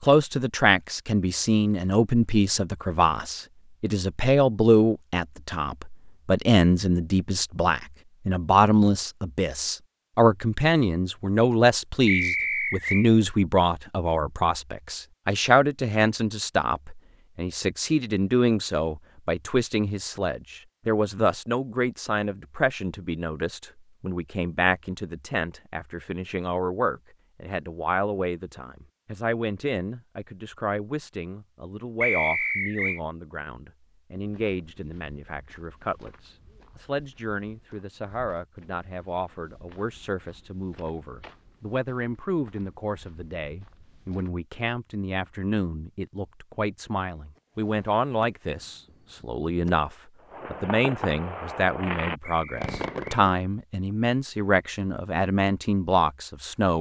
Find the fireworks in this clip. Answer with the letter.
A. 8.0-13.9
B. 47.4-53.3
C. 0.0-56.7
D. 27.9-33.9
B.